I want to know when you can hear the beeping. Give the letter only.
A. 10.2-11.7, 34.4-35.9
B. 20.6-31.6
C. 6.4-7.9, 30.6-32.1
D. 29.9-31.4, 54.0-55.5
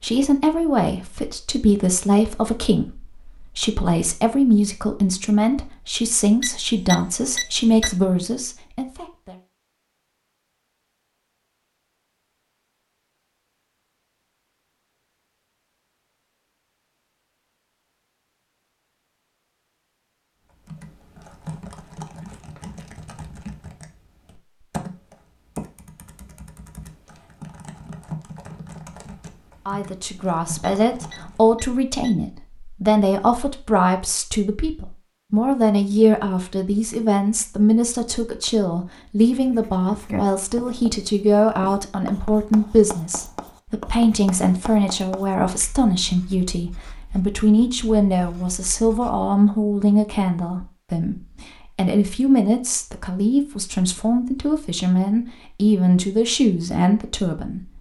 C.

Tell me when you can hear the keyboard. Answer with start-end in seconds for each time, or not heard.
20.6-31.6.